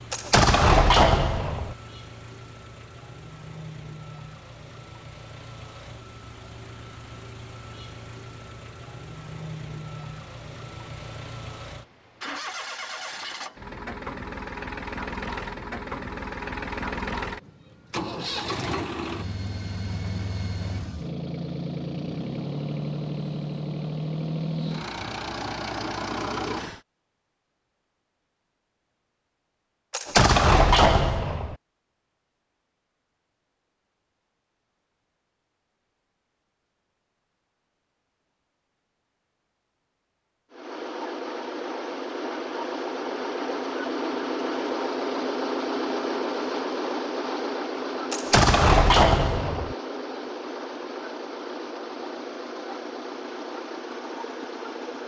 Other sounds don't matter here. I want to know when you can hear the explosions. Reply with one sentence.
The explosions can be heard from 0.1 to 1.8 s, from 29.9 to 31.6 s and from 48.1 to 49.8 s.